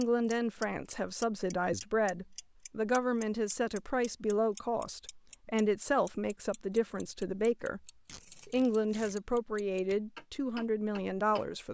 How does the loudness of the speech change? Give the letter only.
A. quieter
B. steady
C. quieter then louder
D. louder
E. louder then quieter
B.